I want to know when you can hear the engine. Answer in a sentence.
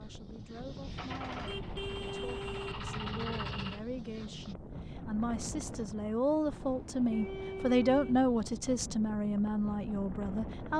You can hear the engine from 0.0 to 4.5 s.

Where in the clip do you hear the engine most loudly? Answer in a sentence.
The loudest moment of the engine is at 3 seconds.